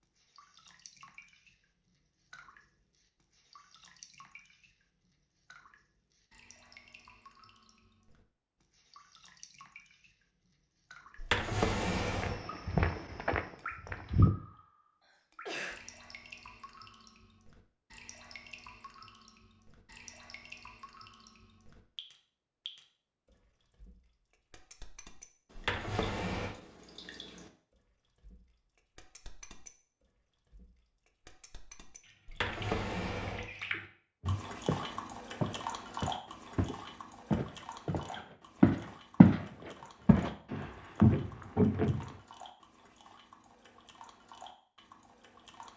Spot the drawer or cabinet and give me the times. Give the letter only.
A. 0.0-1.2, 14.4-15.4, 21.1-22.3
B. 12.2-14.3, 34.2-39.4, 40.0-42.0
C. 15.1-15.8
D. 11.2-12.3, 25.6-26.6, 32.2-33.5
D.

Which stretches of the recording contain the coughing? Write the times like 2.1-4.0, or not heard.
15.1-15.8.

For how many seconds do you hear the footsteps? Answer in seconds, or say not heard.
9 s.